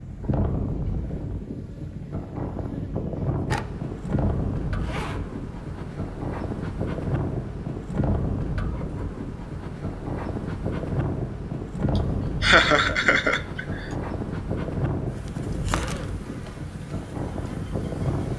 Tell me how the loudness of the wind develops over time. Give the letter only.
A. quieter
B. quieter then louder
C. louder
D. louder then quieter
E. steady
E.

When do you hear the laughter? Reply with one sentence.
The laughter can be heard from 11.9 to 13.8 s.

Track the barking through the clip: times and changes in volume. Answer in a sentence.
The barking can't be heard in this clip.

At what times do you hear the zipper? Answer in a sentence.
You can hear the zipper from 4.8 to 5.2 s and from 15.7 to 16.7 s.